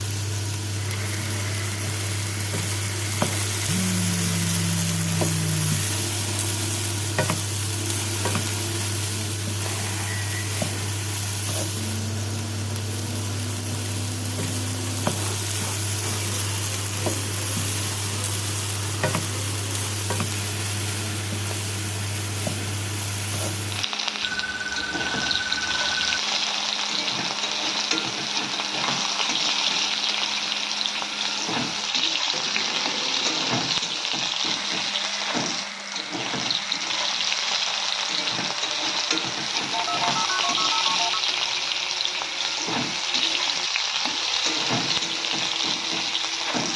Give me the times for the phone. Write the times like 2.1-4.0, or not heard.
3.6-5.8, 24.2-26.2, 39.7-41.1.